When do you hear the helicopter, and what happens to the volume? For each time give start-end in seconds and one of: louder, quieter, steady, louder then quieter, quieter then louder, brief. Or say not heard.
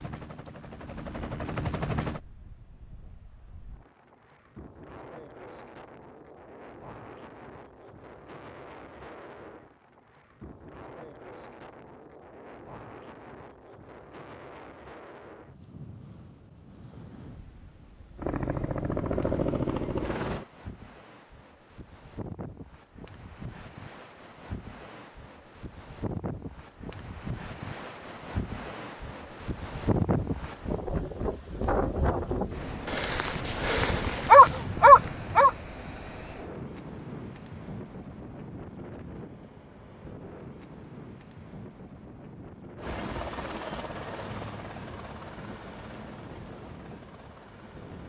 0.0-2.2 brief
18.1-20.4 brief
42.8-48.0 quieter.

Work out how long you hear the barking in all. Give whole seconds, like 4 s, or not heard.
3 s.